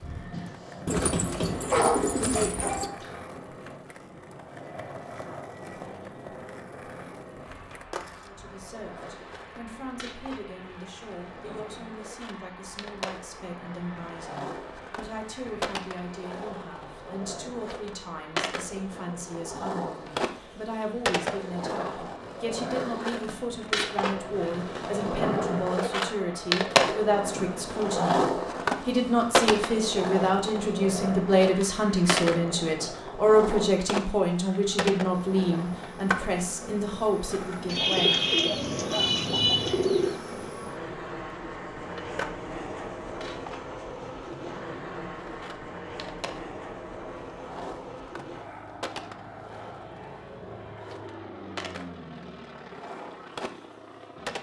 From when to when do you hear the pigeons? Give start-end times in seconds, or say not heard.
0.8-2.9, 37.6-40.1.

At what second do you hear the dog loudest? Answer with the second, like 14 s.
2 s.